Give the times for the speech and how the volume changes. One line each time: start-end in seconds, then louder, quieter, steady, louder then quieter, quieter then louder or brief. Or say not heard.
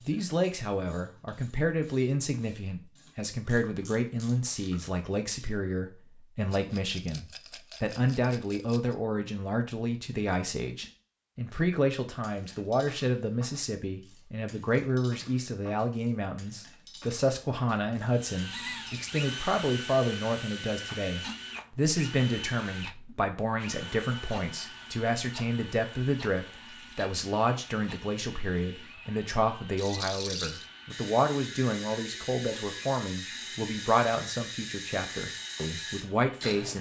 0.1-36.7 steady.